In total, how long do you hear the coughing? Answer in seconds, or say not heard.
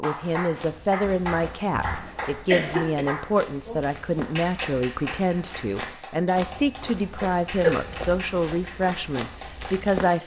3 s.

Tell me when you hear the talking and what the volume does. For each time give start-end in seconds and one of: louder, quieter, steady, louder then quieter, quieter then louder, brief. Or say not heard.
0.0-10.2 steady.